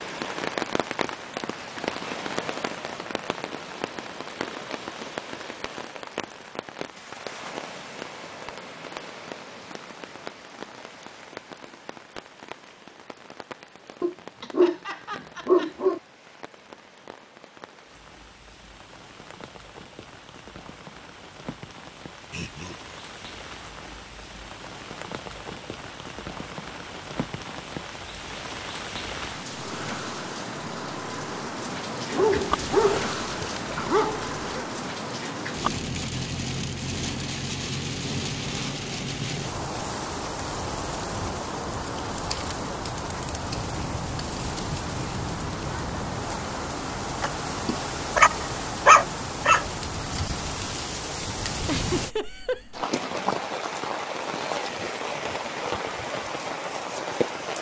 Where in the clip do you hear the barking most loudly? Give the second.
49 s.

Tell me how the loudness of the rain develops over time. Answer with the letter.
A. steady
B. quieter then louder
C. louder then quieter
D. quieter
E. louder
B.